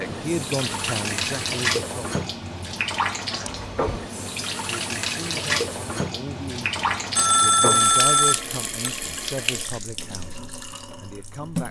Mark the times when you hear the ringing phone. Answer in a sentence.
You can hear the ringing phone from 3.5 to 4.0 s and from 7.2 to 8.9 s.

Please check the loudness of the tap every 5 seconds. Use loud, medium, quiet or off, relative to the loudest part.
loud, loud, medium.